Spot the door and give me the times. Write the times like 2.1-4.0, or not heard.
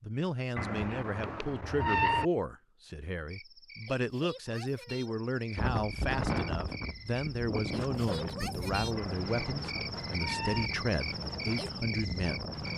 not heard.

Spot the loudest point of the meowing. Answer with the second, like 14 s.
2 s.